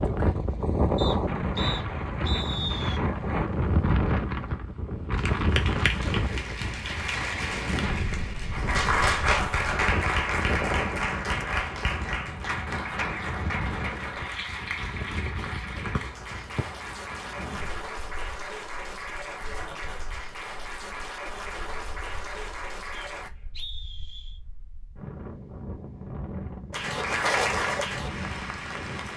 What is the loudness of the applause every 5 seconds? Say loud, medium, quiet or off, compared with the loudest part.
off, loud, loud, medium, medium, loud.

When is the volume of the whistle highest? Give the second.
3 s.